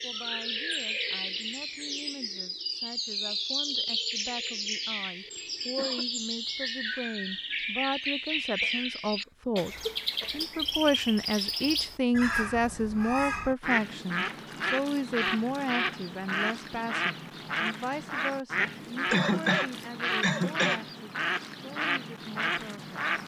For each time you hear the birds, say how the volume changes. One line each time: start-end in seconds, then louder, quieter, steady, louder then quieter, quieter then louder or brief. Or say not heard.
0.0-23.2 steady.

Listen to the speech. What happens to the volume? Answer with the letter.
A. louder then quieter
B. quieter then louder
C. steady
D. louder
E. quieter
A.